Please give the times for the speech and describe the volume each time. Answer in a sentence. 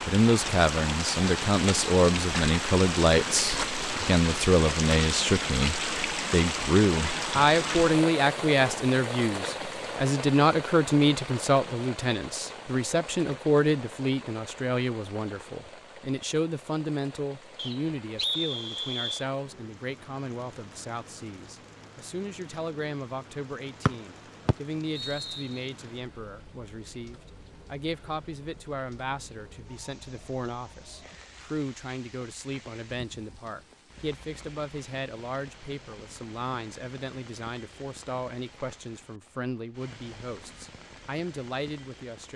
You can hear the speech from 0.1 to 42.3 s, getting quieter.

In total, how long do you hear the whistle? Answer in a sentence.
The whistle can be heard for 3 seconds in total.